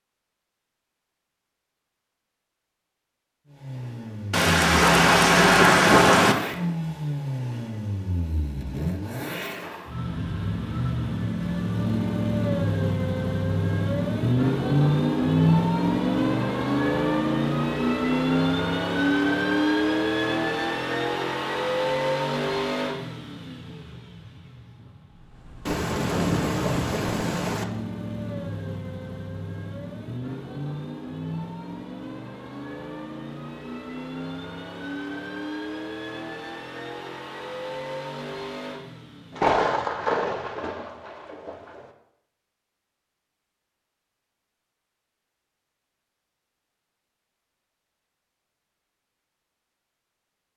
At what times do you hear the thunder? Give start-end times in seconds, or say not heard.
4.3-6.3, 25.6-27.6, 39.4-41.9.